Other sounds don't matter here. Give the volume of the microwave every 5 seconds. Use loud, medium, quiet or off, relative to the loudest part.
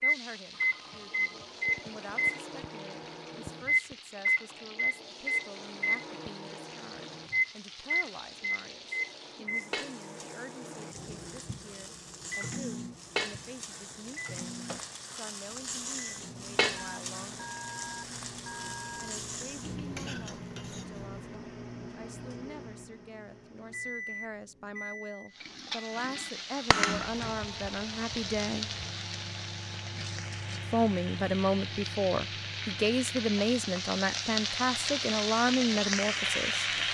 loud, loud, quiet, quiet, quiet, quiet, quiet, quiet.